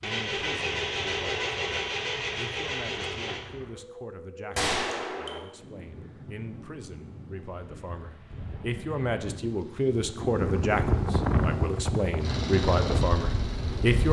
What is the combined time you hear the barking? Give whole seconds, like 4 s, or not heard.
not heard.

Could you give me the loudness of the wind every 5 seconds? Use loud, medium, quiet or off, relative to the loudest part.
quiet, quiet, loud.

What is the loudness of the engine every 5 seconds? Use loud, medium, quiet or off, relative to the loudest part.
loud, off, loud.